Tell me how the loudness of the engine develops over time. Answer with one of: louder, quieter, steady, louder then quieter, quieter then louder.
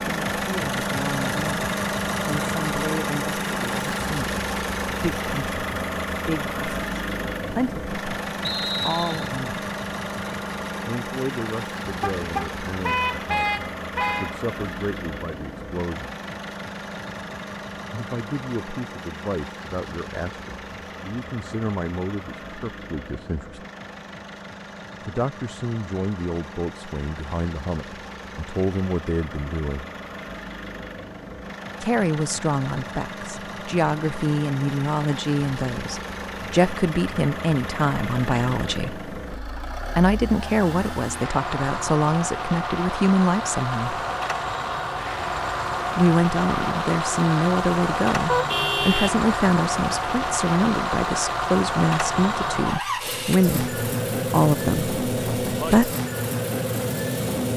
quieter then louder.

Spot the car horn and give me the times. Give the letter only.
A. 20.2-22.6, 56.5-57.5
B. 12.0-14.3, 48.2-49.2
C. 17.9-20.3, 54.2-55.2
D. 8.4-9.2
B.